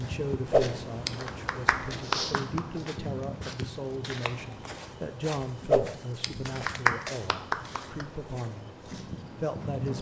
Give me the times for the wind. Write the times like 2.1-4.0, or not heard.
0.0-9.9.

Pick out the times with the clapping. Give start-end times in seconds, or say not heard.
0.5-2.6, 5.7-8.1.